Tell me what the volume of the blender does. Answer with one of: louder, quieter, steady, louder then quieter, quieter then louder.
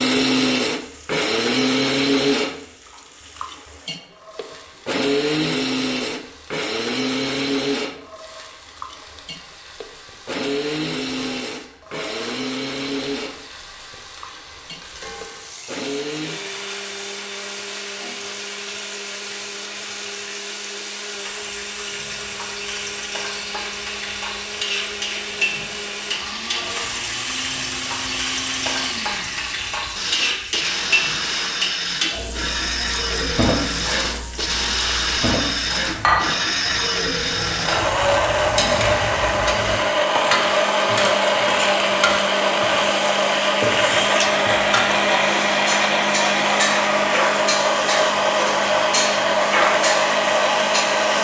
quieter then louder.